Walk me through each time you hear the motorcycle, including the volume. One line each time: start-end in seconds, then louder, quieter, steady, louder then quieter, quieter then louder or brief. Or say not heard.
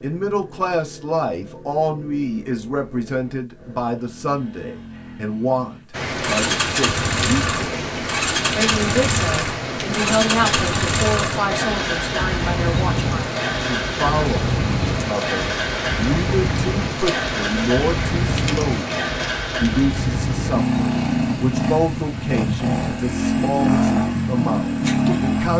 0.0-25.5 louder.